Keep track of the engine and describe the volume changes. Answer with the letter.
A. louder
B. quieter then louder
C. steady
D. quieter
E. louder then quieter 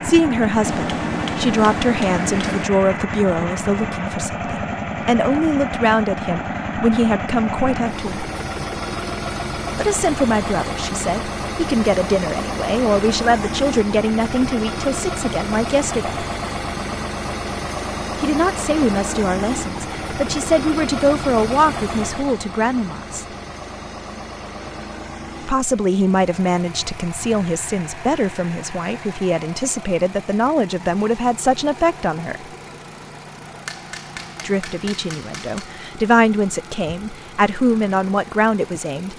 D.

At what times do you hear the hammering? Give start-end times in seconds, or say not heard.
0.6-2.6, 33.6-35.7.